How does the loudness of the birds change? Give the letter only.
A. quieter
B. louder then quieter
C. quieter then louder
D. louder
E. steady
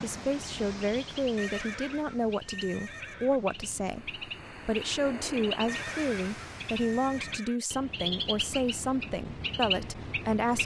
D.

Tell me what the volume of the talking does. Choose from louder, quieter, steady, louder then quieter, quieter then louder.
steady.